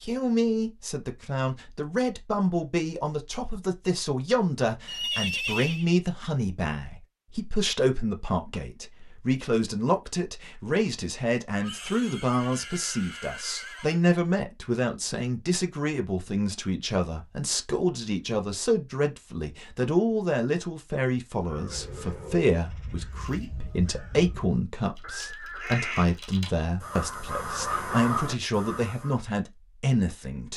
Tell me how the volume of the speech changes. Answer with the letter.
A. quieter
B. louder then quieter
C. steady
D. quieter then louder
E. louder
C.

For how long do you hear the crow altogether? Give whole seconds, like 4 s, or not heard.
8 s.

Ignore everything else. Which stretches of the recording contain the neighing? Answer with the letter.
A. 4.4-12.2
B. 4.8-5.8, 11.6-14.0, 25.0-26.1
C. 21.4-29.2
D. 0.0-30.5
B.